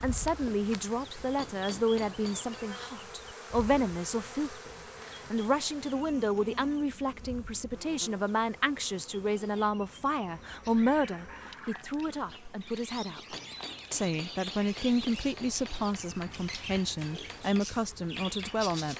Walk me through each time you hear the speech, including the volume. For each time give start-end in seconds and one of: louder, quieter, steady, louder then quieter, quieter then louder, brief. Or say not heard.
0.0-18.9 steady.